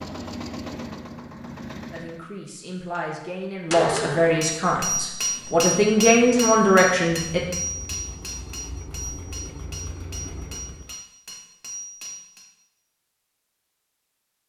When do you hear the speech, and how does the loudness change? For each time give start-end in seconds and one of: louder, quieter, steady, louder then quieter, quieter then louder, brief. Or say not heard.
1.9-7.5 louder.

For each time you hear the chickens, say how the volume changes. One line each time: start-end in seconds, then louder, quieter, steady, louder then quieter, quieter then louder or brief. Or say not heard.
not heard.